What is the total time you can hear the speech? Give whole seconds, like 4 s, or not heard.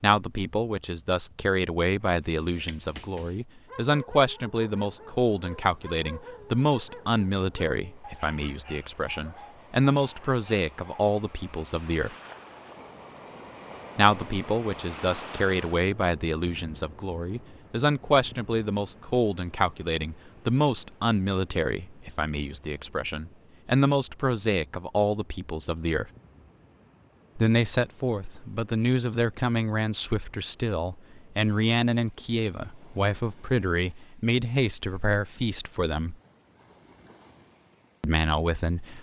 34 s.